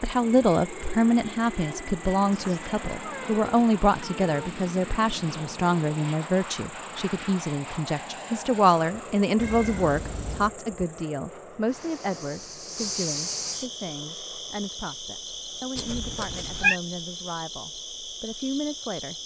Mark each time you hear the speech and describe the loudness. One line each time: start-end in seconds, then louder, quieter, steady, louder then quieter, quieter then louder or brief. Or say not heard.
0.0-19.2 quieter.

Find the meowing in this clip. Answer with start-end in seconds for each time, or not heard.
2.3-4.5, 9.3-10.6, 15.8-16.8.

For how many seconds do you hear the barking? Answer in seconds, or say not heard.
not heard.